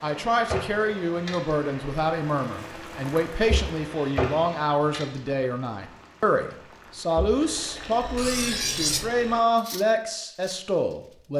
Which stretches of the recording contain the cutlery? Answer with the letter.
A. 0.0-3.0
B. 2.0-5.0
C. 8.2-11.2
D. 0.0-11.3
C.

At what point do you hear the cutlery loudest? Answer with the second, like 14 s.
9 s.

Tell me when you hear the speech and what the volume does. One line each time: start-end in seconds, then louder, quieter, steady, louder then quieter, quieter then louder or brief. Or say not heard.
0.0-11.3 steady.